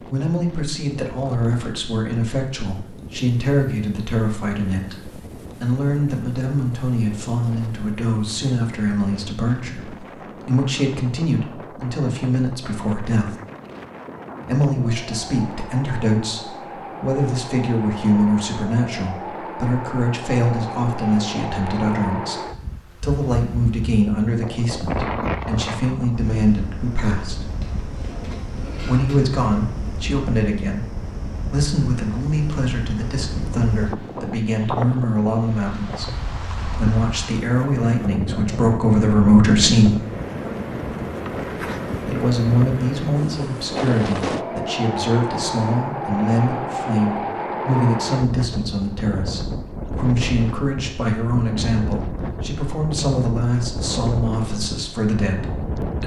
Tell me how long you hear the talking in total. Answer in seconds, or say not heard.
51 s.